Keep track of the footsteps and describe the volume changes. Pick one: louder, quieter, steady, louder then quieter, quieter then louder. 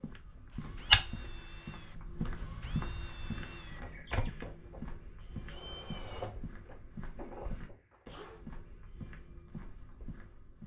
quieter.